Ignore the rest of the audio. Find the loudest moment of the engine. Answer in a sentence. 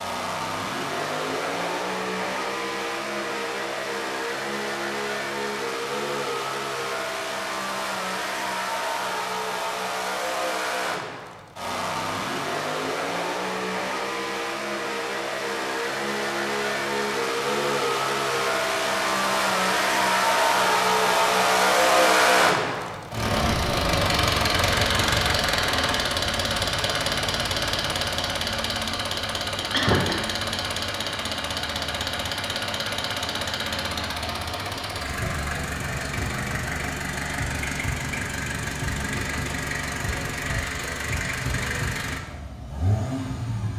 The loudest moment of the engine is at 22 seconds.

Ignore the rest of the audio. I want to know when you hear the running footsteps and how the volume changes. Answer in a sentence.
You can't hear the running footsteps here.